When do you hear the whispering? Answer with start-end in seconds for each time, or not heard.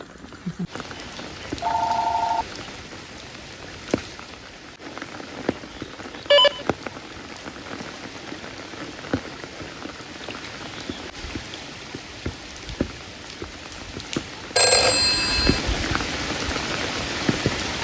not heard.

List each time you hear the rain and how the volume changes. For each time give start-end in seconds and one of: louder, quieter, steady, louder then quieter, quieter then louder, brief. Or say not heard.
0.0-17.7 louder.